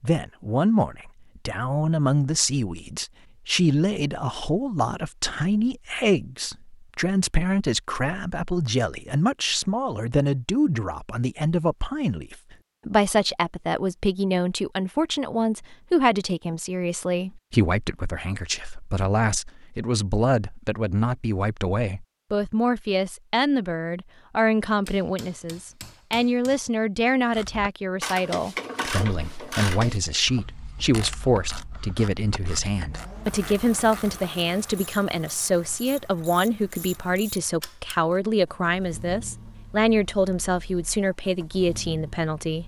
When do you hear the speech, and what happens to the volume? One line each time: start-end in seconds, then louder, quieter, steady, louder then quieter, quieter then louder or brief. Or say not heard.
0.0-42.6 steady.